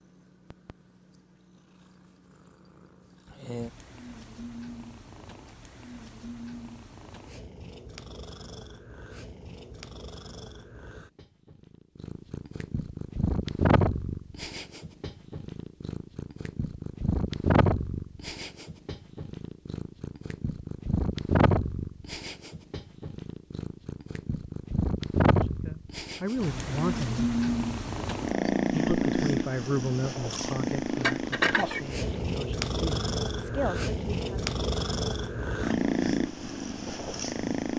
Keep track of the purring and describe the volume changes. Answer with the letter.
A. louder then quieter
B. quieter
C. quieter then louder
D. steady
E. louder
E.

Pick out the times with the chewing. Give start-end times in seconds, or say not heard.
30.3-32.2.